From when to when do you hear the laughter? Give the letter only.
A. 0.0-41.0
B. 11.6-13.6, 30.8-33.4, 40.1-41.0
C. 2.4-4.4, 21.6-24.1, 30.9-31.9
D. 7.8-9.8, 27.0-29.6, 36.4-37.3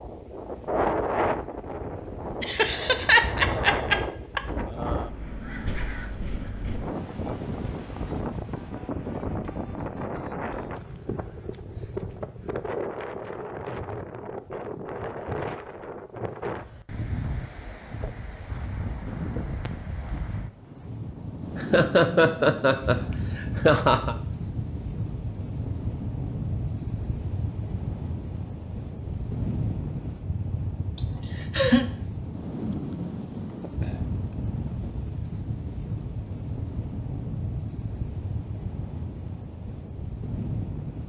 C.